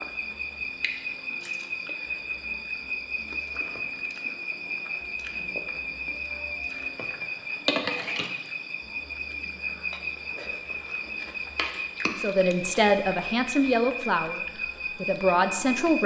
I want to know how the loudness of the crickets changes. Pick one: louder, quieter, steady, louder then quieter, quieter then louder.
steady.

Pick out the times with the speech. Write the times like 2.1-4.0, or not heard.
12.2-16.0.